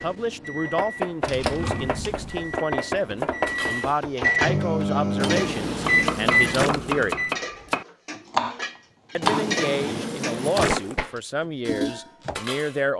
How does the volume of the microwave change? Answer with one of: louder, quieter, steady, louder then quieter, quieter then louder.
louder.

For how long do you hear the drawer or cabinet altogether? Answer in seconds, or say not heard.
5 s.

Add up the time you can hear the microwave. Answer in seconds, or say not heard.
7 s.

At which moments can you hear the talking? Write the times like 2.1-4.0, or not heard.
0.0-7.2, 9.2-12.9.